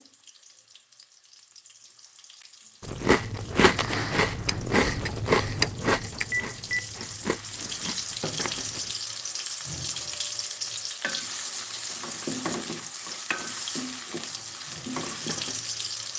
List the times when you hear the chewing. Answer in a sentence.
The chewing can be heard from 2.9 to 8.9 s.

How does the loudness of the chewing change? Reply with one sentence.
The volume of the chewing goes down.